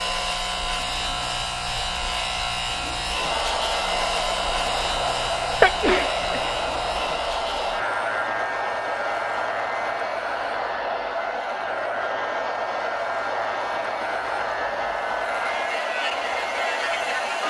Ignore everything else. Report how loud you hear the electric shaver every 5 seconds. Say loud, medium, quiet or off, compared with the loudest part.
loud, loud, medium, loud.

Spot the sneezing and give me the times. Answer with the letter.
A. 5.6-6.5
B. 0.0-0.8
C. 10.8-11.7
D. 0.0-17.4
A.